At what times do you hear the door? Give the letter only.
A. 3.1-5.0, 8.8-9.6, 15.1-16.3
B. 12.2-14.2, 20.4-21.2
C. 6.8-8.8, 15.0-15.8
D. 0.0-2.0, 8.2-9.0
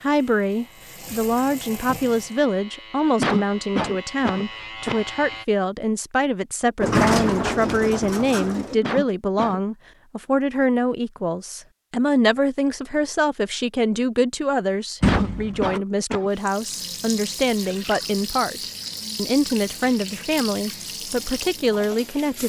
C.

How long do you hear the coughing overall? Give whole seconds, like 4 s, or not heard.
4 s.